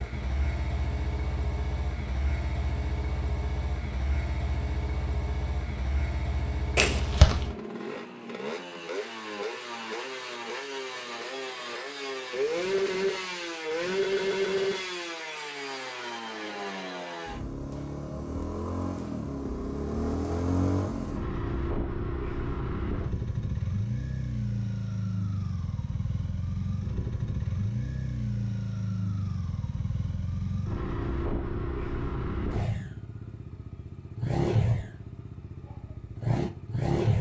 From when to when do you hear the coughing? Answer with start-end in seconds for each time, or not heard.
6.8-7.5.